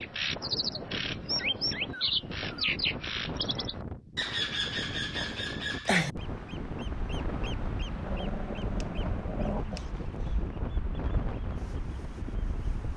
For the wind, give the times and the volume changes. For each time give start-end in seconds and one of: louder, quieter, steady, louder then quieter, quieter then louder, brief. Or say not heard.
0.0-12.9 steady.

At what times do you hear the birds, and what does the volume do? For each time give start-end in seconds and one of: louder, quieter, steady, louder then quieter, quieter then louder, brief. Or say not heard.
0.0-12.9 quieter.